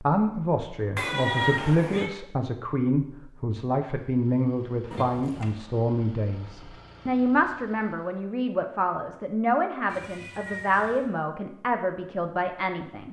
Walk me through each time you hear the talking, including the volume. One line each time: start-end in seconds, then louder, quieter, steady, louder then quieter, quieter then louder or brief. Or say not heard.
0.0-13.0 steady.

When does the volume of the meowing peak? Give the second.
1 s.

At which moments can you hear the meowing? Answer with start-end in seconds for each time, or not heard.
0.9-2.1, 4.9-5.5, 9.8-11.1.